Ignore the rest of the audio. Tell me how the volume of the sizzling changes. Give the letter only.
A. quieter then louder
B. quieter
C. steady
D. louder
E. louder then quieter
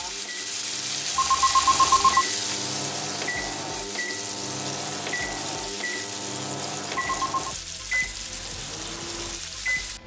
B.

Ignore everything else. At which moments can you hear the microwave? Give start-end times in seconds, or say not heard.
0.0-10.0.